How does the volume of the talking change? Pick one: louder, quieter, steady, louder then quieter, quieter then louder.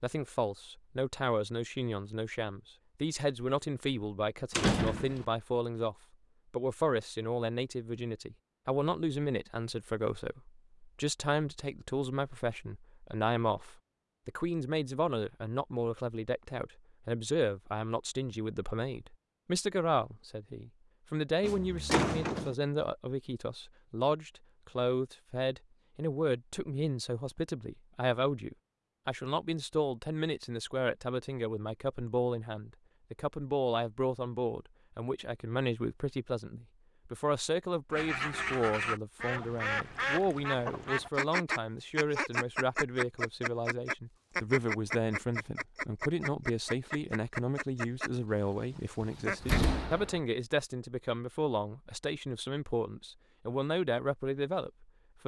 steady.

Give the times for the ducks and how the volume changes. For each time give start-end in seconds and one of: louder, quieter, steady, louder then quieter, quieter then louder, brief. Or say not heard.
37.9-49.6 quieter.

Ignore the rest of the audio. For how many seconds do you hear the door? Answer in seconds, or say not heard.
3 s.